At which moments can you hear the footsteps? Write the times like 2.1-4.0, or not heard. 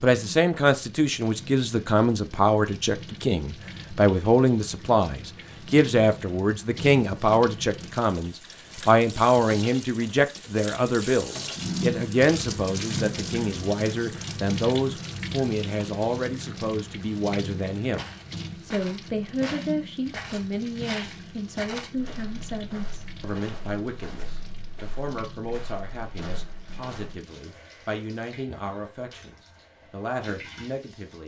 17.9-27.2.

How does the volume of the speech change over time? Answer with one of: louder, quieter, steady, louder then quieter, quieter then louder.
quieter.